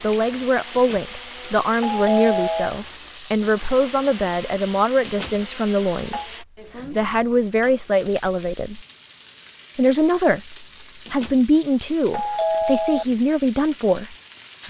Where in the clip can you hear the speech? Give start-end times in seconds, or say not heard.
0.0-8.8, 9.8-14.6.